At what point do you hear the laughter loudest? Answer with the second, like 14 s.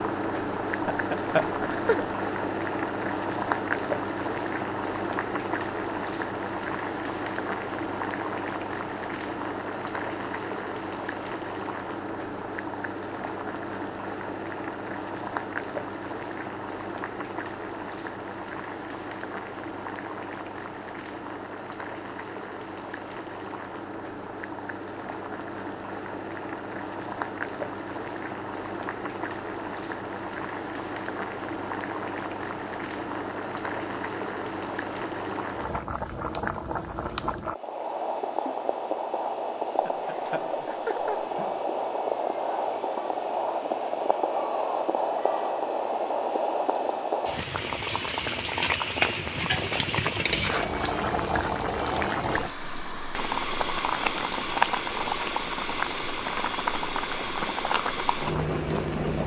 1 s.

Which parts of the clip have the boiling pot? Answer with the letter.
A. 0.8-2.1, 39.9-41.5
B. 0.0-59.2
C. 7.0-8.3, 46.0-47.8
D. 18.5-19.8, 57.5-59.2
B.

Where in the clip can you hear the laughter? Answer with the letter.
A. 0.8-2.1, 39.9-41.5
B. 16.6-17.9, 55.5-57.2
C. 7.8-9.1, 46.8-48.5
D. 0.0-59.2
A.